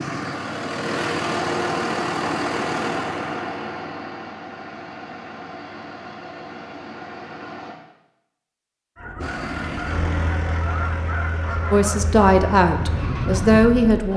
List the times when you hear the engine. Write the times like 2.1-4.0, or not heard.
0.0-7.8, 9.2-14.1.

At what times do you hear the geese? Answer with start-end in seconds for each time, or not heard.
8.9-14.0.